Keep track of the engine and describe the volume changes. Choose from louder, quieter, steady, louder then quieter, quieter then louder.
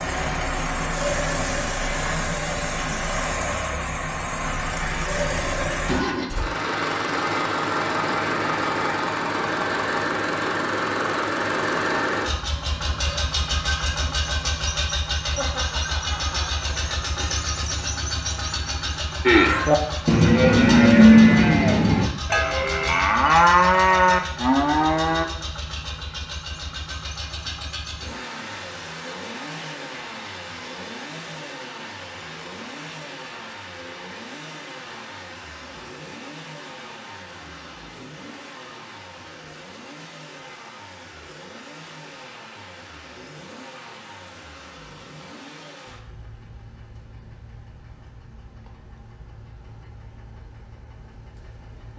quieter.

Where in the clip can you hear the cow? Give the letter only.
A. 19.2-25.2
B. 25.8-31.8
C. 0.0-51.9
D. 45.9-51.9
A.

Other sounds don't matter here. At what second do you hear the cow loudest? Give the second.
21 s.